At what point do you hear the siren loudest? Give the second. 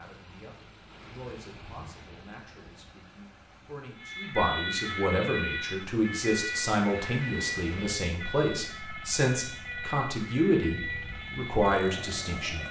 5 s.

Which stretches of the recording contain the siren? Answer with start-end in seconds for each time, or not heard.
4.0-12.6.